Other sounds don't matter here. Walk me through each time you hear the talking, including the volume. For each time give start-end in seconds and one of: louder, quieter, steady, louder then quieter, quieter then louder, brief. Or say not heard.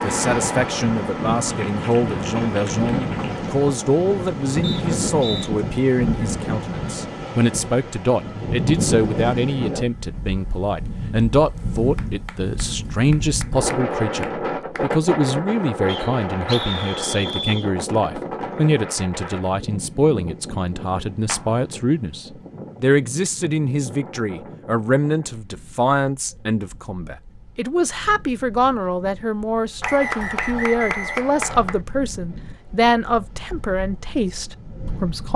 0.0-35.3 steady.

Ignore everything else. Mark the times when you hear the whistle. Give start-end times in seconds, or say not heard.
4.6-5.5, 15.8-17.6, 29.8-31.7.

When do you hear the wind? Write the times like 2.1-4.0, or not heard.
0.0-35.3.